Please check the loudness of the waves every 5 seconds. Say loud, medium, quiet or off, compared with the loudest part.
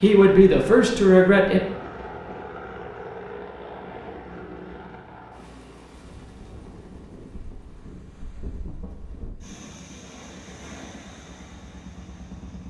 off, loud, loud.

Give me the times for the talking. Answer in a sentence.
You can hear the talking from 0.0 to 1.6 s.